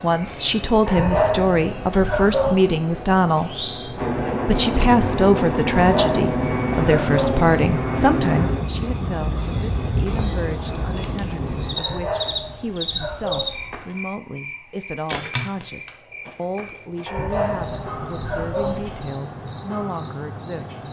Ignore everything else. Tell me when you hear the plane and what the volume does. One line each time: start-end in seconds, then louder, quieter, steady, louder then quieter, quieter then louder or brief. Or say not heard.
0.0-8.7 louder.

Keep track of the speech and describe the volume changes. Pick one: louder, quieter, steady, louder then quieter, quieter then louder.
quieter.